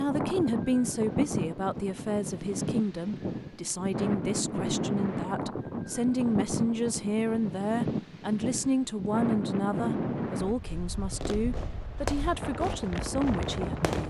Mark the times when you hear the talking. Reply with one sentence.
The talking can be heard from 0.0 to 14.0 s.